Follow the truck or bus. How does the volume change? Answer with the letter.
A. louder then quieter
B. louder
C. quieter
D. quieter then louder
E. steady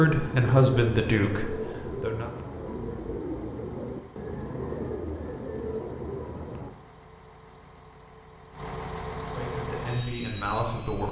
B.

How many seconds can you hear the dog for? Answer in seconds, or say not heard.
not heard.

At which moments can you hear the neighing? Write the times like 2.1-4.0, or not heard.
not heard.